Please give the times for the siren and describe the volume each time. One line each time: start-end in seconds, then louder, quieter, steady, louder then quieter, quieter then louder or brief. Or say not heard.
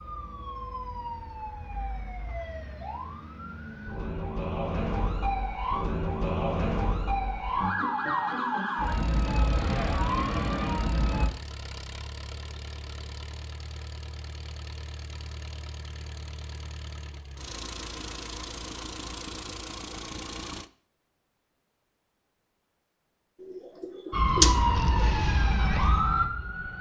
0.0-11.3 louder
24.1-26.7 brief.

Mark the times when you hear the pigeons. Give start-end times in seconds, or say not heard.
23.4-25.1.